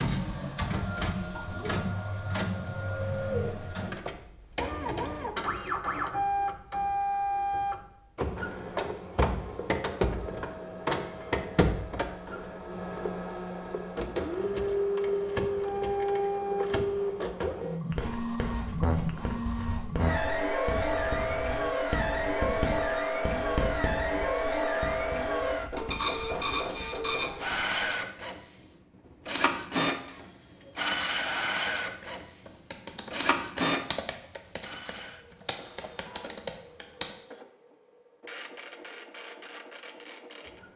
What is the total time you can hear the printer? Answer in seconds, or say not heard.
41 s.